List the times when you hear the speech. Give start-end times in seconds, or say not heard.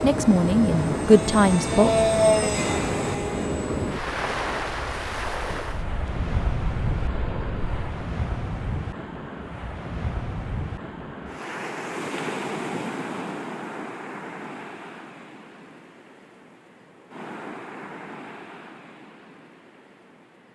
0.0-2.5.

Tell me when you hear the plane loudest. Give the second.
2 s.